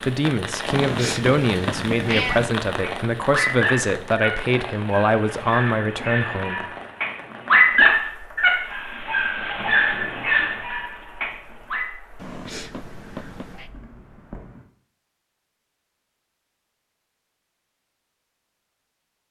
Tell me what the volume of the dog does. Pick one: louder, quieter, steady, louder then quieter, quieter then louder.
louder then quieter.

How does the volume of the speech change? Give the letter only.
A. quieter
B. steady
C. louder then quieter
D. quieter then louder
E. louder
B.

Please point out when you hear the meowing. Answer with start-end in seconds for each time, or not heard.
0.7-2.5, 12.2-13.7.